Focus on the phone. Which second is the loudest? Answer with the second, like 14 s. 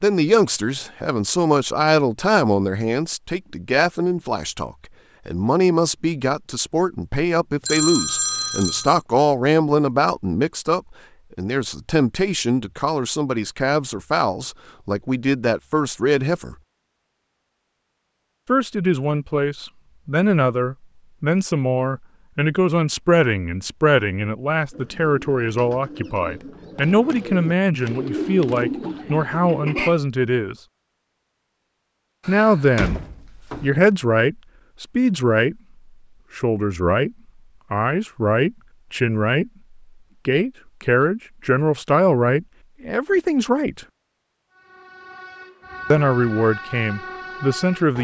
8 s.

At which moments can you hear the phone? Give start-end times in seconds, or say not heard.
7.7-9.0, 26.8-28.6.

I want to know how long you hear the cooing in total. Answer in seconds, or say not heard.
5 s.